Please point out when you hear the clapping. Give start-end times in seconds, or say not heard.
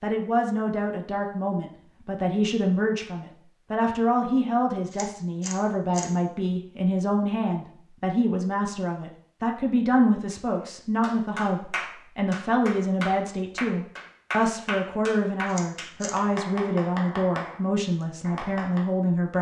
11.0-18.9.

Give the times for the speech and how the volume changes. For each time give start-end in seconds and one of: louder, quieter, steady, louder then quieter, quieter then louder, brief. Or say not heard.
0.0-19.3 steady.